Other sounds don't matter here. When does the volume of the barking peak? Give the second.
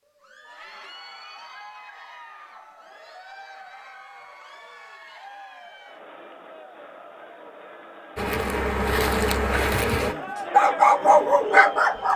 11 s.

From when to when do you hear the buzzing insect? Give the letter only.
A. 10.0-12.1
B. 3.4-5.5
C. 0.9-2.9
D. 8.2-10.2
D.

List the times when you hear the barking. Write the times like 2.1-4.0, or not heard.
10.0-12.1.